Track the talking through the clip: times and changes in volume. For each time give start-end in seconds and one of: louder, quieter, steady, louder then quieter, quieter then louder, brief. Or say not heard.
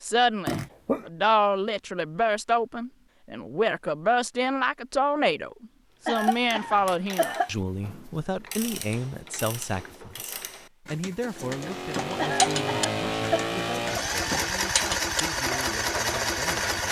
0.0-16.8 quieter.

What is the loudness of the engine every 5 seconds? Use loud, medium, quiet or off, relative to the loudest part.
off, off, loud, loud.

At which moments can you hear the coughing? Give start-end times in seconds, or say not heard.
0.5-1.1, 6.0-7.5, 12.2-13.6.